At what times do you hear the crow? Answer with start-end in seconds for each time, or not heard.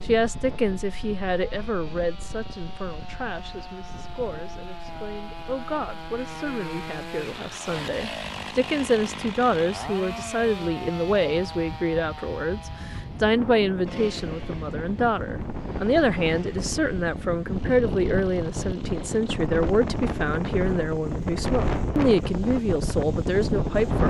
not heard.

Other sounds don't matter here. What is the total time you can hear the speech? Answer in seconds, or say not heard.
24 s.